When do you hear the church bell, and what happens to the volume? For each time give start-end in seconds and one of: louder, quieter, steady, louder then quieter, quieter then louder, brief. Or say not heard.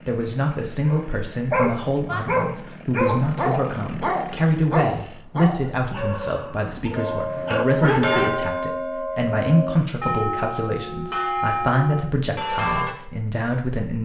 7.0-12.9 steady.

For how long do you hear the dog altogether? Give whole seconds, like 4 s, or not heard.
8 s.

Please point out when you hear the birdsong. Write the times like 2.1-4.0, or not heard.
not heard.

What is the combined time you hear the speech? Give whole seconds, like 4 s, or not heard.
14 s.